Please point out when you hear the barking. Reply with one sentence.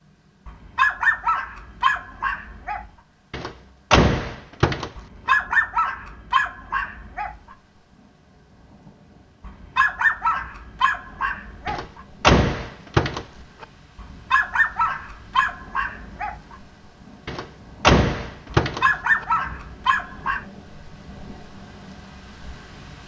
You can hear the barking from 0.5 to 2.9 s, from 5.0 to 7.3 s, from 9.4 to 12.0 s, from 13.9 to 16.6 s and from 18.6 to 20.4 s.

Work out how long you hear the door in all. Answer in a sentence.
You can hear the door for 6 seconds altogether.